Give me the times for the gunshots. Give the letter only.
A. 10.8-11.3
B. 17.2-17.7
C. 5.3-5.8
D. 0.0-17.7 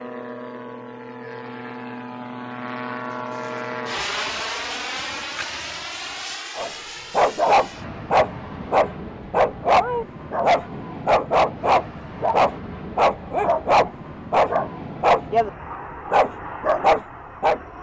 C.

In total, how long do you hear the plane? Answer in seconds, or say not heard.
18 s.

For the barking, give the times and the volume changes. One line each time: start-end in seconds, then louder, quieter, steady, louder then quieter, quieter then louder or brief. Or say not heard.
6.5-15.5 steady
16.1-17.6 brief.